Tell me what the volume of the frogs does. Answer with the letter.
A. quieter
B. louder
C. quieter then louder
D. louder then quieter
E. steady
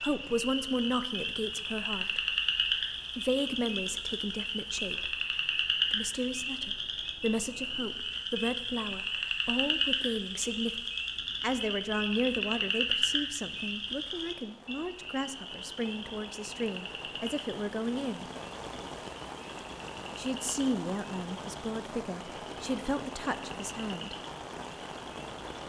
A.